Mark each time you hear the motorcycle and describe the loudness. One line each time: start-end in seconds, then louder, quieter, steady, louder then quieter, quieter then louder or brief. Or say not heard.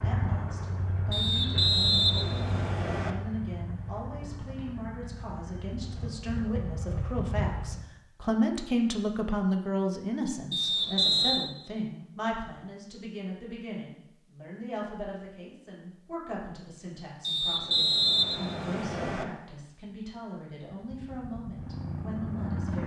0.0-7.8 quieter then louder
20.7-22.8 brief.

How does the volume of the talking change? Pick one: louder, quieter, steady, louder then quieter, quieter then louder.
louder then quieter.